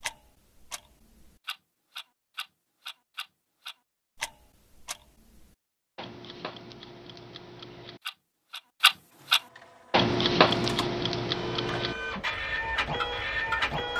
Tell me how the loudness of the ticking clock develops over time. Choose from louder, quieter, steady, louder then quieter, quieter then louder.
louder then quieter.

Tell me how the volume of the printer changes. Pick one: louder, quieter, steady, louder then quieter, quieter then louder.
louder.